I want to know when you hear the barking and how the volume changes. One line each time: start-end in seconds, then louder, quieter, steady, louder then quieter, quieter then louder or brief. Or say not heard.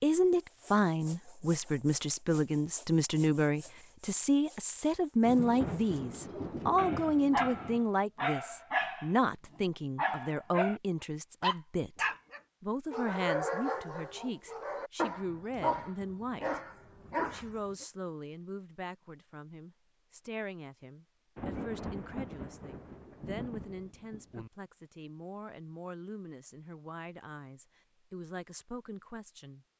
6.3-9.2 brief
9.9-10.8 brief
11.4-17.9 steady.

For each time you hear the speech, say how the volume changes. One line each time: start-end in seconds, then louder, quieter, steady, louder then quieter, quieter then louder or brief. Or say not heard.
0.0-16.6 quieter
17.3-29.6 steady.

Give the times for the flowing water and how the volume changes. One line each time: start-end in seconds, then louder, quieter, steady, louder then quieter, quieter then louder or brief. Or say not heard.
not heard.